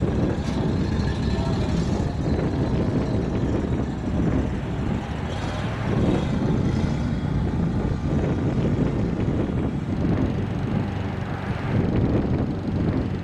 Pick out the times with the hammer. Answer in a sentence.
The hammer can't be heard in this clip.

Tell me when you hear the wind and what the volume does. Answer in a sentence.
The wind can be heard from 0.0 to 13.1 s, at a steady volume.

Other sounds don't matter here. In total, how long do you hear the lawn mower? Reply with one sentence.
You can hear the lawn mower for 13 seconds altogether.